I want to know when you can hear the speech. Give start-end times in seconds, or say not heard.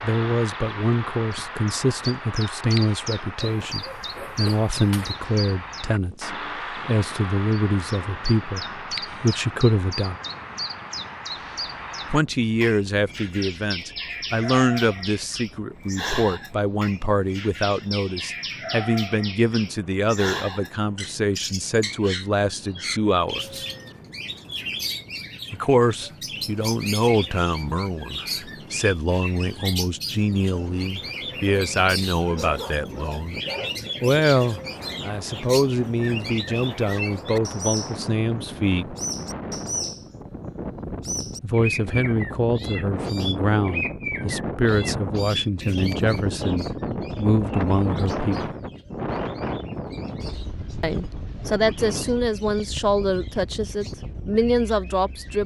0.0-10.2, 12.1-23.6, 25.5-33.4, 34.0-39.0, 41.4-48.5, 50.8-55.4.